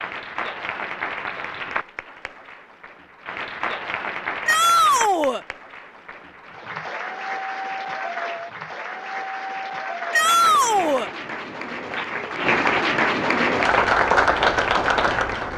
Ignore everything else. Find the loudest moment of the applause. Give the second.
14 s.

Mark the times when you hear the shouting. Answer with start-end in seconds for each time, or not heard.
4.5-5.4, 10.1-11.1.